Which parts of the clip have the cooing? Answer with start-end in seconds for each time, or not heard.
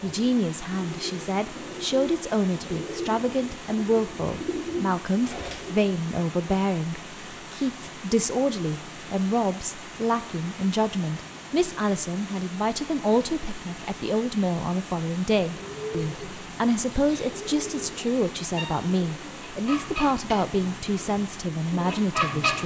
0.0-5.8, 15.4-22.6.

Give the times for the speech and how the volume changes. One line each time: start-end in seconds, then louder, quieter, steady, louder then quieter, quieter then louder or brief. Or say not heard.
0.0-22.6 steady.